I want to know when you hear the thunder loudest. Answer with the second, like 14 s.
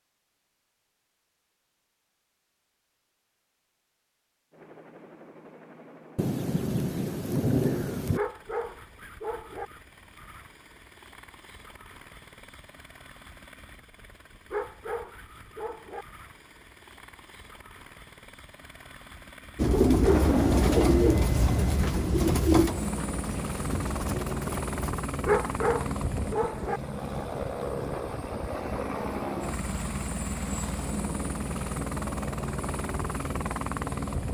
8 s.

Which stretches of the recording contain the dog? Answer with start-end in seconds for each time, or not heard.
8.2-9.7, 14.5-16.1, 25.2-26.8.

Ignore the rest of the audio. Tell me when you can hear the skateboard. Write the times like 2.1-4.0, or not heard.
not heard.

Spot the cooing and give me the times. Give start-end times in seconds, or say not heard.
19.6-25.0.